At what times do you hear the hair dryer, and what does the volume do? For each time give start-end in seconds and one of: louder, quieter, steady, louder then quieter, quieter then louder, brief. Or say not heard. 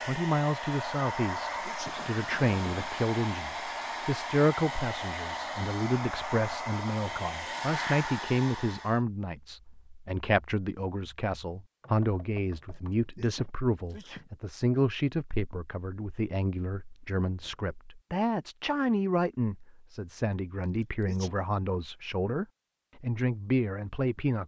0.0-9.0 steady.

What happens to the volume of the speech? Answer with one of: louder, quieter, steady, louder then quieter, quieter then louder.
steady.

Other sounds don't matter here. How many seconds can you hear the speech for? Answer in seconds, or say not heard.
24 s.